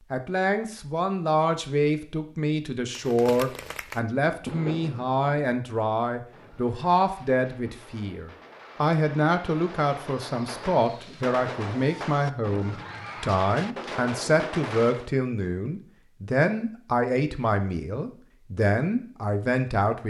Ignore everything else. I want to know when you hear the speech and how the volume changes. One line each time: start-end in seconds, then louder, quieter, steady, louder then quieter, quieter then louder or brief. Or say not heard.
0.1-20.0 steady.